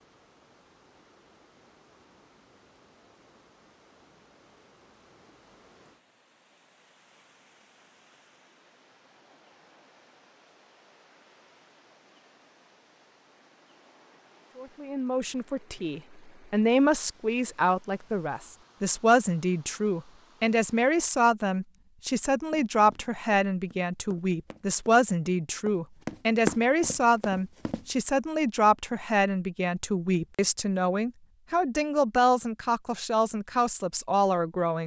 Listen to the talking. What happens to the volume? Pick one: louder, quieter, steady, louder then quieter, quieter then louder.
steady.